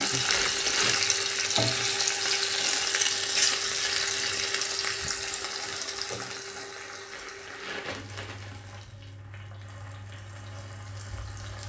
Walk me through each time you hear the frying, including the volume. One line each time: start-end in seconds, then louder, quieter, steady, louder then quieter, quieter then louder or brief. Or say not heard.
0.0-11.6 quieter.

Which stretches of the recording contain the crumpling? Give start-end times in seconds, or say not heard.
0.2-1.0, 7.1-8.6.